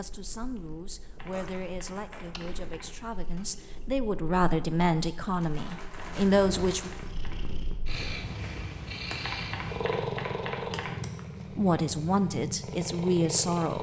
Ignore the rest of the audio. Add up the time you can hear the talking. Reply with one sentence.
The talking can be heard for 9 seconds in total.